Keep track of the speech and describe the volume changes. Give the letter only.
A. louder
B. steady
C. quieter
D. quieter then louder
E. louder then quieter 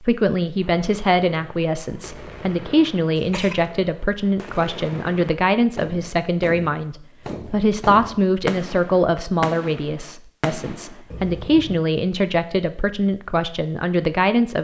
B.